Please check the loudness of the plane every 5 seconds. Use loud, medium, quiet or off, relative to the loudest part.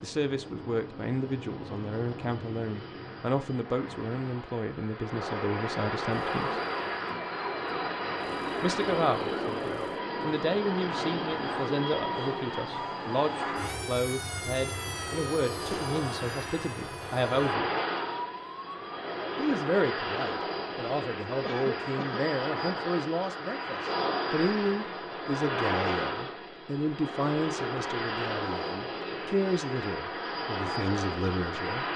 medium, loud, loud, loud, loud, loud, loud.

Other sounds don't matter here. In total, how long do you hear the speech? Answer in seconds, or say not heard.
28 s.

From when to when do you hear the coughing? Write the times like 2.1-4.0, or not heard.
21.4-22.2.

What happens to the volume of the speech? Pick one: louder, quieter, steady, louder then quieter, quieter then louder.
steady.